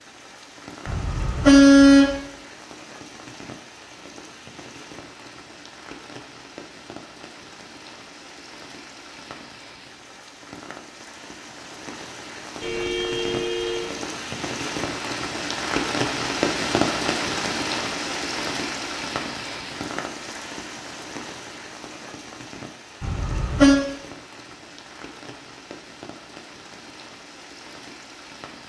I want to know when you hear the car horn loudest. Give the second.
2 s.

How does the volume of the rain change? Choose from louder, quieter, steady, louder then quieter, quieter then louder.
louder then quieter.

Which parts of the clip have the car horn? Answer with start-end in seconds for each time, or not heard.
0.8-2.1, 12.6-13.9, 23.0-23.9.